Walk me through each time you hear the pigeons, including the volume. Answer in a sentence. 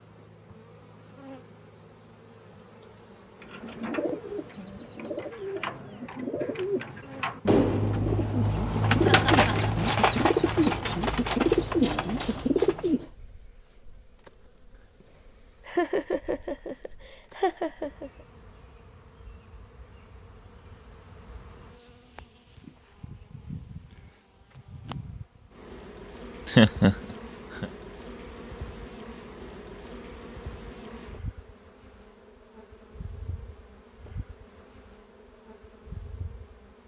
The pigeons can be heard from 3.4 to 13.1 s, getting louder.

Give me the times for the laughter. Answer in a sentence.
You can hear the laughter from 9.0 to 9.8 s, from 15.7 to 18.1 s and from 26.4 to 26.9 s.